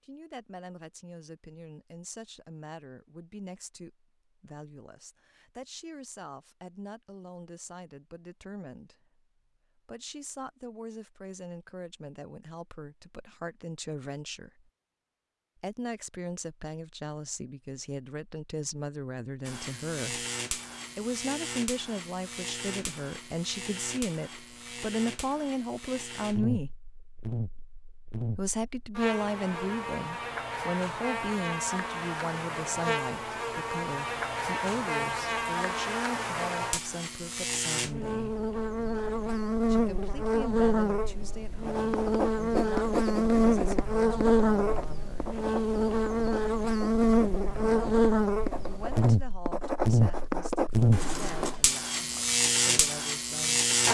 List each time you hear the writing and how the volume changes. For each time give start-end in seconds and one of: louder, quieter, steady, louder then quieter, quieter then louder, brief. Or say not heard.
41.6-51.6 quieter then louder.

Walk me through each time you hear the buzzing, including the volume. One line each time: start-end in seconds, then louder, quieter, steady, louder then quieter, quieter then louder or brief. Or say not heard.
19.4-53.9 louder.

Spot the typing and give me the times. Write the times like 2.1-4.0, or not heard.
not heard.